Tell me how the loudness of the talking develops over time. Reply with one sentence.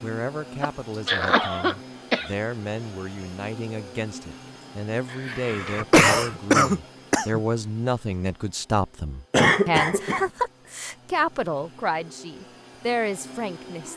The volume of the talking goes up.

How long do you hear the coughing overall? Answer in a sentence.
The coughing can be heard for 5 seconds in total.